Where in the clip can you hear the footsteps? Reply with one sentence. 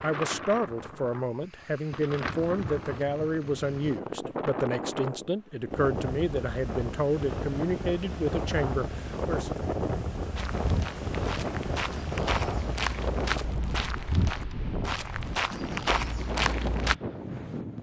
You can hear the footsteps from 10.3 to 16.9 s.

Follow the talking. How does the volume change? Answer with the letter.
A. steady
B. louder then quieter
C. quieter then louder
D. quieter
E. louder
A.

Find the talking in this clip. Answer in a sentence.
You can hear the talking from 0.0 to 9.6 s.